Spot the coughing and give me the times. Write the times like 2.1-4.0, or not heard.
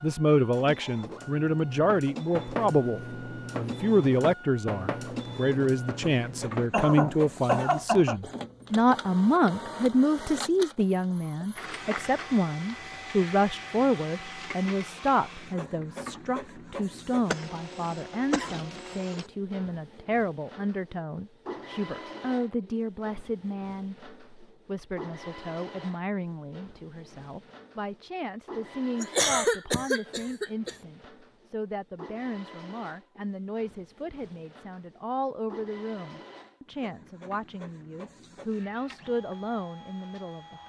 6.7-8.2, 17.3-19.2, 29.0-30.8.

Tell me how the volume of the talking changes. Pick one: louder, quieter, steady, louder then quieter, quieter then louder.
quieter.